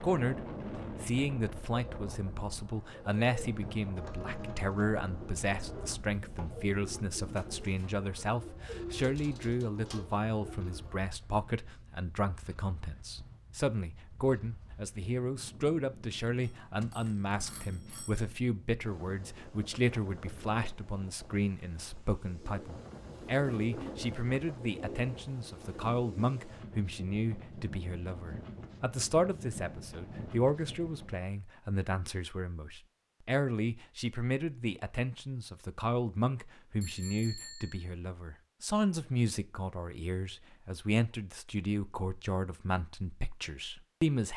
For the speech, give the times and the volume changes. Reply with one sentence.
The speech can be heard briefly from 0.0 to 0.4 s; and from 1.0 to 44.3 s, at a steady volume.